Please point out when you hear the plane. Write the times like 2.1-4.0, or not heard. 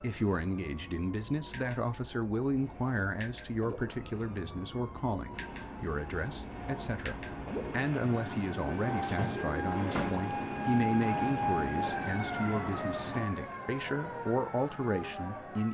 5.3-13.3.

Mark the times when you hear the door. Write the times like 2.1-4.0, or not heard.
9.1-10.2.